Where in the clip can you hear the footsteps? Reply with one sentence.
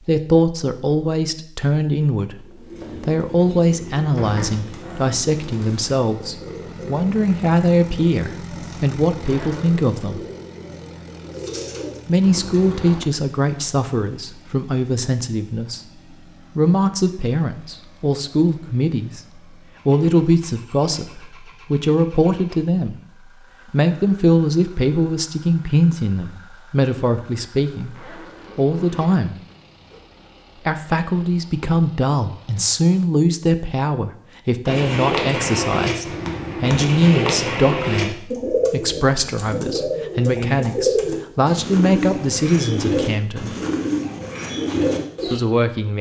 The footsteps can't be heard in this clip.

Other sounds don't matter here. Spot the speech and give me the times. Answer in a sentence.
The speech can be heard from 0.1 to 10.2 s, from 12.1 to 29.4 s, from 30.6 to 43.5 s and from 45.3 to 45.9 s.